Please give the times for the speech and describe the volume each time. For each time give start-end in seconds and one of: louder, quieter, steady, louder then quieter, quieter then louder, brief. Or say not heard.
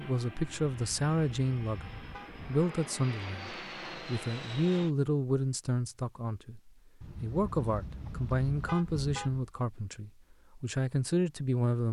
0.0-11.8 steady.